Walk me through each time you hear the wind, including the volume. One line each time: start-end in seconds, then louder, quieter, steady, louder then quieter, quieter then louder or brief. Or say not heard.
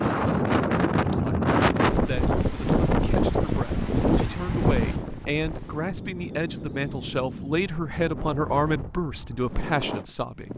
0.0-10.5 quieter.